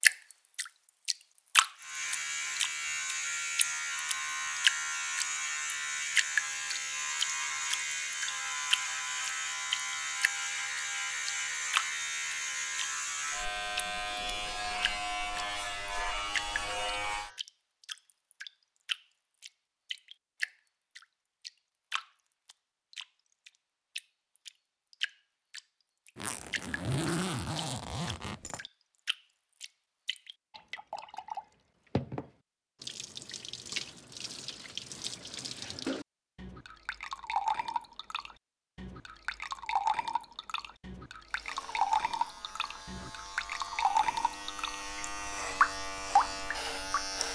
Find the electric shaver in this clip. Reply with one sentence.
You can hear the electric shaver from 1.8 to 17.4 s and from 41.2 to 47.2 s.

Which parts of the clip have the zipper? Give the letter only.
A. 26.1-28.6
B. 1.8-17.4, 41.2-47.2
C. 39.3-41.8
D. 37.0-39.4
A.